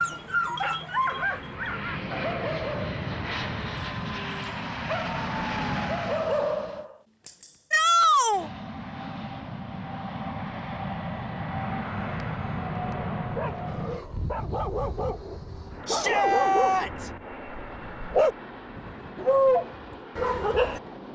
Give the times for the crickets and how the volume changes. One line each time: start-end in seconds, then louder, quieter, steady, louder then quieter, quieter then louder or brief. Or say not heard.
not heard.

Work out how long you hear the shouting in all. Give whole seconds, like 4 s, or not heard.
2 s.